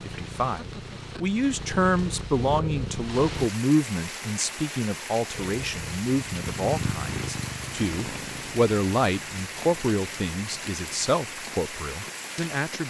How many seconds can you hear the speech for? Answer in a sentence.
You can hear the speech for 13 seconds altogether.